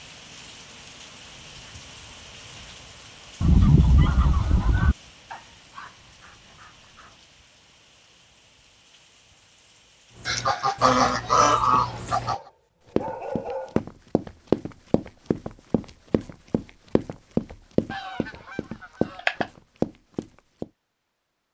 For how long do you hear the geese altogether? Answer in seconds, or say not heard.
5 s.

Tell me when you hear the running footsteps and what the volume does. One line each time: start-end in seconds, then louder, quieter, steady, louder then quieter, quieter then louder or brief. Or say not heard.
10.2-12.3 brief
12.9-20.7 quieter then louder.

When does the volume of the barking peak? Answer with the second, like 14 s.
13 s.